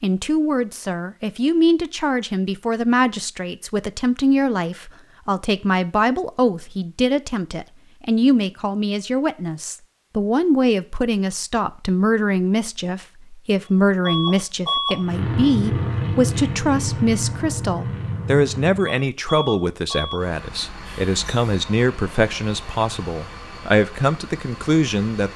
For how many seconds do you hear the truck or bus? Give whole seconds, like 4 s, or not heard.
12 s.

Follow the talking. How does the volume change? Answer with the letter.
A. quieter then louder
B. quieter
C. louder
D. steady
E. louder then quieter
D.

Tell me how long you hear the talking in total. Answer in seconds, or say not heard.
25 s.